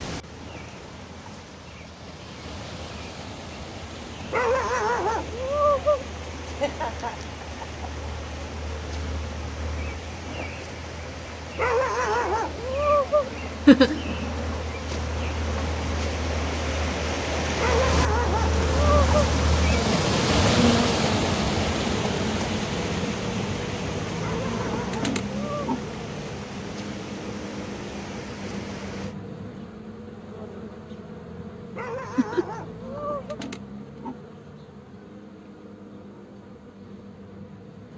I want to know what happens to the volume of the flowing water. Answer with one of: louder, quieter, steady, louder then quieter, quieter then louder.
louder then quieter.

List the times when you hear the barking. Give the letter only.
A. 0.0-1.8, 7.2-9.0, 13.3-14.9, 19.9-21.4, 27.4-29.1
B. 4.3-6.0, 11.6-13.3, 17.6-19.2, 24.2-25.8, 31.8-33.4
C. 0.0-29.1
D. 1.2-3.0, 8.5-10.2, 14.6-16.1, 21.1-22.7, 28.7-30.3
B.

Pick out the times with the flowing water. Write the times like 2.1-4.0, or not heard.
0.0-29.1.